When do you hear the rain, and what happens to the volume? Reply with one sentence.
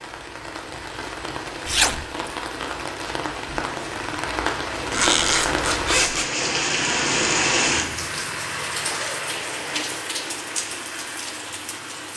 You can hear the rain from 0.0 to 12.1 s, getting louder then quieter.